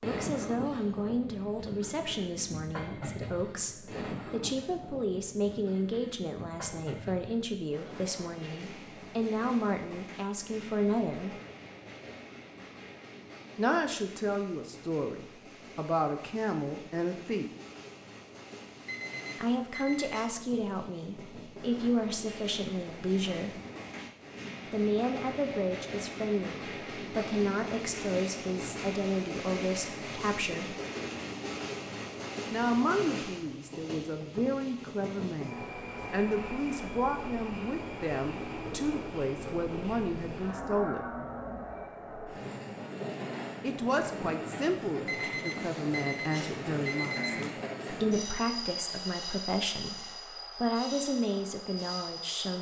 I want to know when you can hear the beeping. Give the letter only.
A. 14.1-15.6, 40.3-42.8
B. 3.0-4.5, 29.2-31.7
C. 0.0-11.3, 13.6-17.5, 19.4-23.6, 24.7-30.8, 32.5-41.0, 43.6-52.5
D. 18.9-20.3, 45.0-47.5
D.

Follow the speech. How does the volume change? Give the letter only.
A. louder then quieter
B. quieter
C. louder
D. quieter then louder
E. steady
E.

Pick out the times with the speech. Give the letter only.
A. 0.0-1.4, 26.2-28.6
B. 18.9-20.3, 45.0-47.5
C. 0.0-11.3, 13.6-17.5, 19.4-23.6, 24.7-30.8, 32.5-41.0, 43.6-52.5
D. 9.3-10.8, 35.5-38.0
C.